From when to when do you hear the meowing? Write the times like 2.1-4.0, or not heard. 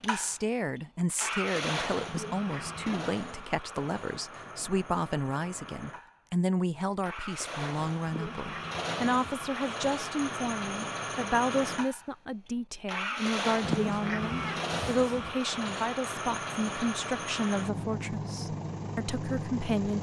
2.0-3.0, 8.1-9.6, 13.6-15.3.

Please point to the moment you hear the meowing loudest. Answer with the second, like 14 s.
14 s.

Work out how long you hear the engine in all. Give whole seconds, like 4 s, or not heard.
20 s.